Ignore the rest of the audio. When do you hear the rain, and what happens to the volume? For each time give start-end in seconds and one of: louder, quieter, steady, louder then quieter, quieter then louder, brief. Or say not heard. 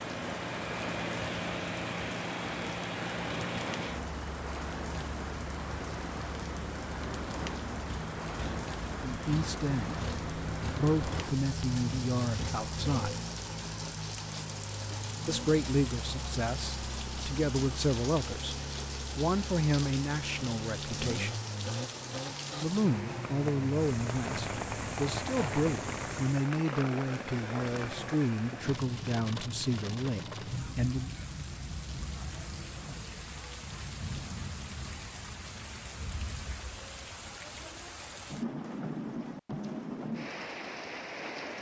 0.0-41.5 steady.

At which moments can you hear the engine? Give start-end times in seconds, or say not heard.
0.0-26.5.